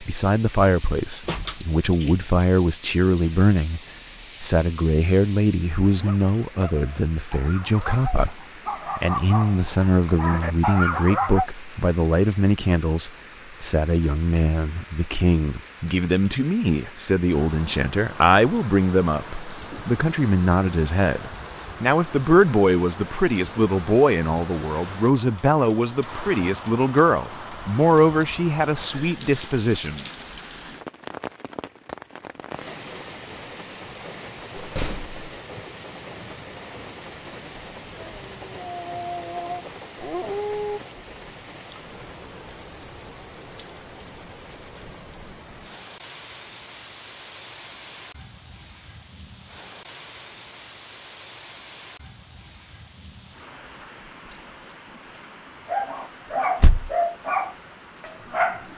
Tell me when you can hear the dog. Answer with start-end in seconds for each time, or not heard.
5.8-11.5, 38.0-40.8, 55.6-58.7.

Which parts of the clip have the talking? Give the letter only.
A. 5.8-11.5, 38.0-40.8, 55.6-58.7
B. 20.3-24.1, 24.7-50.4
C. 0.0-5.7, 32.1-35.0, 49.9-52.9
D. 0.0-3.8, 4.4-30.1
D.